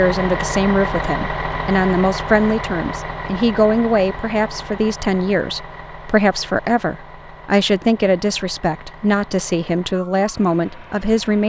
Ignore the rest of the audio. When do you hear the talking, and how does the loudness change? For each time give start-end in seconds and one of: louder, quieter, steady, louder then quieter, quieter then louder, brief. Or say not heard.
0.0-11.4 steady.